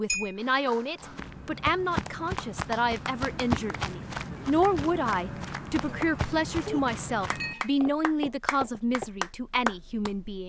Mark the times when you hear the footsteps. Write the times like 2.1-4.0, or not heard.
0.9-9.1.